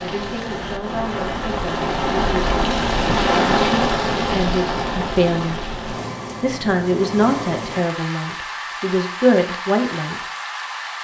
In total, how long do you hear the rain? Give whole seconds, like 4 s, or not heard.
11 s.